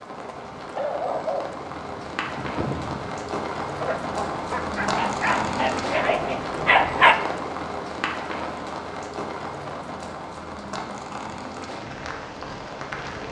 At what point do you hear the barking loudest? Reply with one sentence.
The volume of the barking peaks at 7 seconds.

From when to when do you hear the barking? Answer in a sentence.
The barking can be heard from 0.6 to 7.2 s.